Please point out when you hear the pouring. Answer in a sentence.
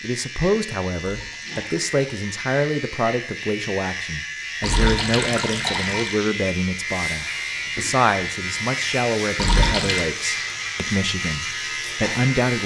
You can hear the pouring from 0.9 to 2.4 s, from 4.6 to 6.2 s and from 9.3 to 10.1 s.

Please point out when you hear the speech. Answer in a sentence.
You can hear the speech from 0.0 to 12.6 s.